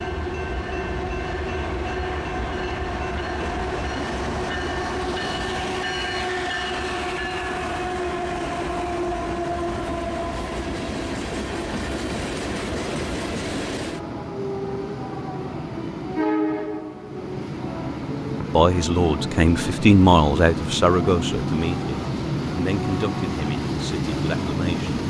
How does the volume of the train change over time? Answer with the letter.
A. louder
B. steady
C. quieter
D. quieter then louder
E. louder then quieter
B.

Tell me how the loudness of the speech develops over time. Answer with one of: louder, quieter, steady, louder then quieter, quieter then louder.
quieter.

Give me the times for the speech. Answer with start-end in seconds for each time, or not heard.
18.5-24.9.